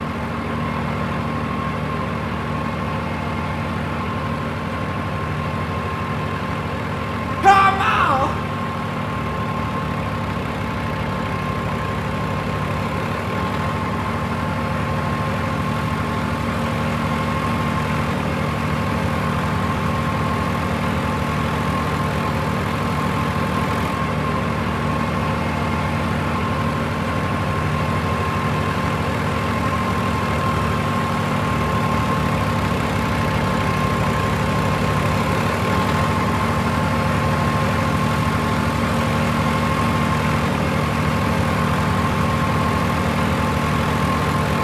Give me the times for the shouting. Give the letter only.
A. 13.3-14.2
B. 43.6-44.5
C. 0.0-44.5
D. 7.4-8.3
D.